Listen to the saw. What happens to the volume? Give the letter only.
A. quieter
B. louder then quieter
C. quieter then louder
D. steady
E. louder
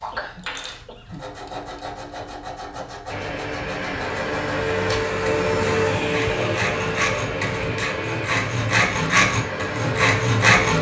E.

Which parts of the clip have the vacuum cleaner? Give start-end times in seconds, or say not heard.
3.0-10.7.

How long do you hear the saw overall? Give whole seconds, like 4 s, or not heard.
11 s.